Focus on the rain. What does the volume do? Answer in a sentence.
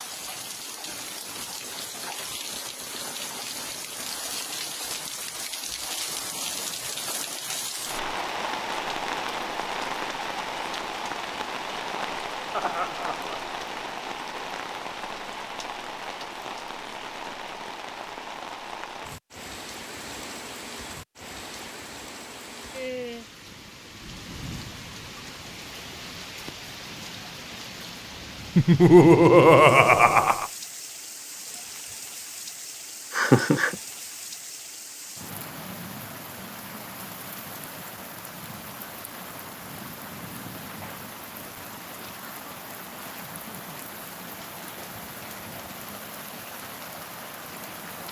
The loudness of the rain goes down.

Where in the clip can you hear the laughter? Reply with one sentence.
The laughter can be heard from 12.5 to 13.4 s, from 28.6 to 30.5 s and from 33.1 to 33.8 s.